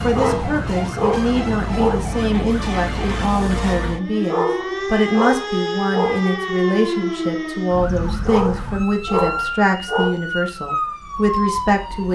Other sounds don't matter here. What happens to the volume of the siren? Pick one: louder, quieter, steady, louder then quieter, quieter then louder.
steady.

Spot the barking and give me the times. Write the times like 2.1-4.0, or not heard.
0.1-2.0, 4.2-6.3, 8.2-10.2.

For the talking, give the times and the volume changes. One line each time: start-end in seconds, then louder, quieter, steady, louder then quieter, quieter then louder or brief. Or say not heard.
0.0-12.1 steady.